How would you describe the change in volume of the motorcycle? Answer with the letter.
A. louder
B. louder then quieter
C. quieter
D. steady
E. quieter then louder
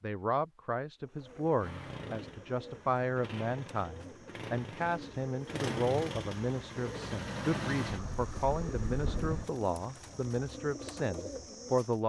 A.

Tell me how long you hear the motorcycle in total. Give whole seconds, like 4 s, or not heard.
8 s.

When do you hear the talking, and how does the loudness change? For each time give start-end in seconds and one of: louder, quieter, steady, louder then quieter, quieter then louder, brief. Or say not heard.
0.0-12.0 steady.